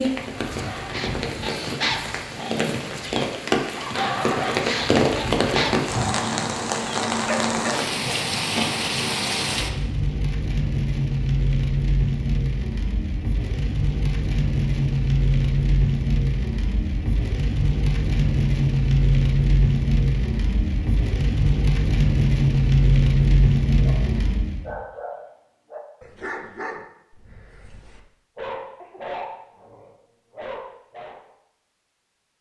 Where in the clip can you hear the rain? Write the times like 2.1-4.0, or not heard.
0.0-24.7.